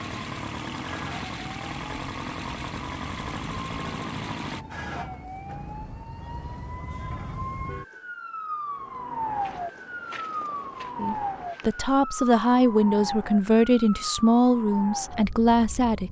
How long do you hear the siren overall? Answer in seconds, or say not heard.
16 s.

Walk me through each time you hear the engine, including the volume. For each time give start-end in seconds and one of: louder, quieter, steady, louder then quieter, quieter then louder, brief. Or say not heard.
0.0-4.7 steady.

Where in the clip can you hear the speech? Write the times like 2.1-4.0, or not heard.
10.9-16.0.